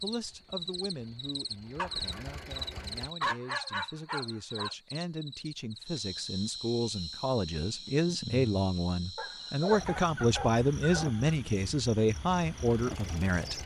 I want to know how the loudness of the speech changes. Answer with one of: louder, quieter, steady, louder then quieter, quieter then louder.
louder.